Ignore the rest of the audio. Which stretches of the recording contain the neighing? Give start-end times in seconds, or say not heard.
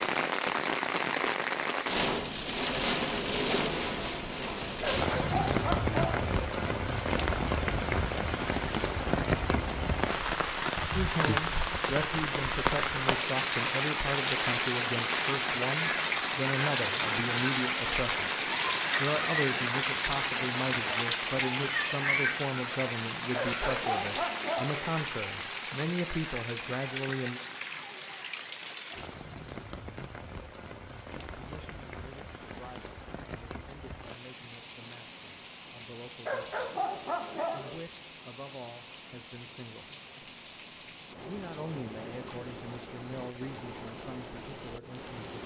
not heard.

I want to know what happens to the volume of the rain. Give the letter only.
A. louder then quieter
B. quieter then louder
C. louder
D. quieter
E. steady
D.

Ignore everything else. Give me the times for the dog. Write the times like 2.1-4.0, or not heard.
4.8-6.2, 23.3-24.9, 36.2-37.8.